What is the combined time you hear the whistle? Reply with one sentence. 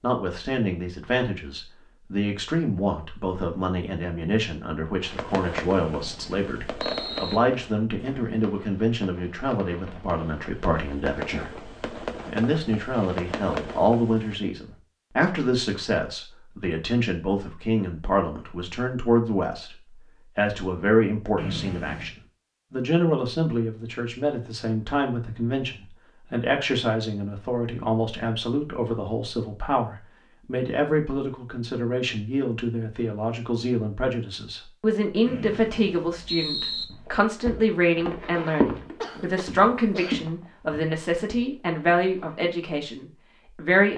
You can hear the whistle for 4 seconds altogether.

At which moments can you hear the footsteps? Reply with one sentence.
You can hear the footsteps from 36.9 to 42.4 s.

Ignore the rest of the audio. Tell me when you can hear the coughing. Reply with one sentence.
The coughing can be heard from 39.0 to 40.2 s.